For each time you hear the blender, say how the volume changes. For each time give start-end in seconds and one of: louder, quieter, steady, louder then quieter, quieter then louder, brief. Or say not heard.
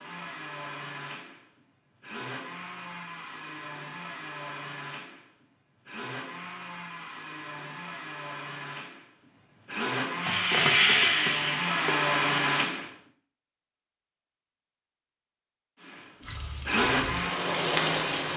0.0-12.9 louder
15.8-18.3 brief.